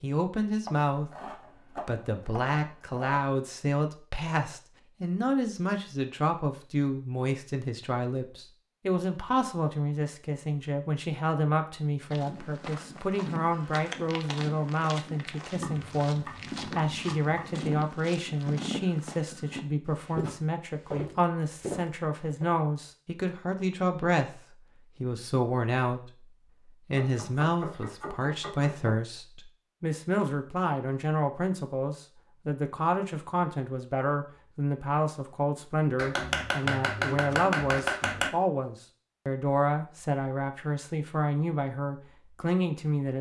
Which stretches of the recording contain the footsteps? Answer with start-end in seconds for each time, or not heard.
12.1-22.6.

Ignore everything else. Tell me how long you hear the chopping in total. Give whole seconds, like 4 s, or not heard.
9 s.